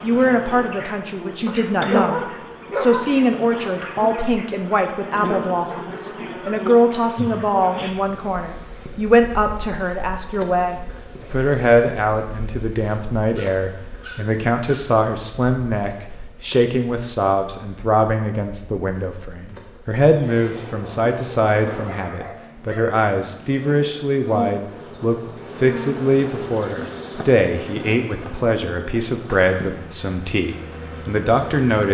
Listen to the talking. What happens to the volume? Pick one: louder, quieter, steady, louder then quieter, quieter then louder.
steady.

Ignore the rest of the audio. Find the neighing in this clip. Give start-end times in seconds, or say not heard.
not heard.